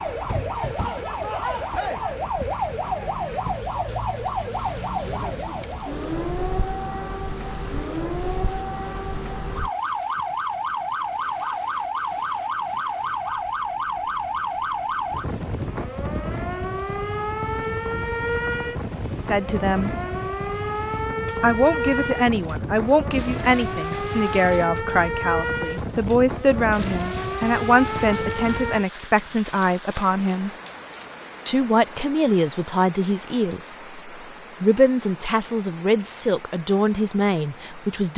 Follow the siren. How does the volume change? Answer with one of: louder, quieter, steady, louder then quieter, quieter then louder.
steady.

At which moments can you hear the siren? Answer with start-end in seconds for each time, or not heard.
0.0-28.9.